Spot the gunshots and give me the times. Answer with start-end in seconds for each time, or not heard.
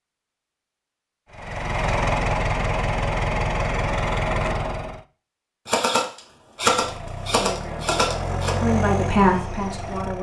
5.7-8.6.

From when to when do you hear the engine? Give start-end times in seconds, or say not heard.
1.3-5.0, 6.7-10.1.